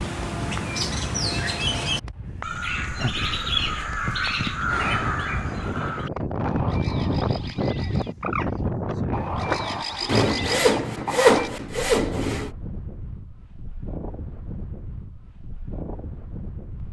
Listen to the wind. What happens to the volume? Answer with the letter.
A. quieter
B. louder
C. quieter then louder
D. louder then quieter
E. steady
D.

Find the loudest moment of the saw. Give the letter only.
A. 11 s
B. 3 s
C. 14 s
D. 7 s
A.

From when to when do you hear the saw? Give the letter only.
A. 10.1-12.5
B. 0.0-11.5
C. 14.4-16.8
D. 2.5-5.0
A.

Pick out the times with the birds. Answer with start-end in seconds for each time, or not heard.
0.0-11.5.